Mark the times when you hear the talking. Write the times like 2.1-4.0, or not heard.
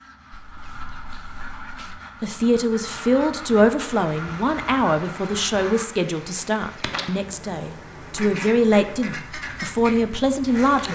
2.2-10.9.